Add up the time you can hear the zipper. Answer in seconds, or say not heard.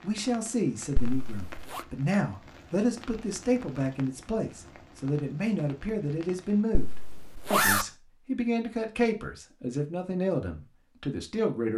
2 s.